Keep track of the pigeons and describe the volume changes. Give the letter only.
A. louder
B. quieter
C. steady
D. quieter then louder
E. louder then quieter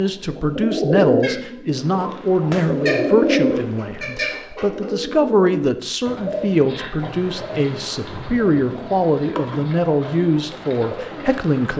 B.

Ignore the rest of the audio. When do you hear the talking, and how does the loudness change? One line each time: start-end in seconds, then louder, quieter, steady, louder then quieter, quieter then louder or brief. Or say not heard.
0.0-11.7 steady.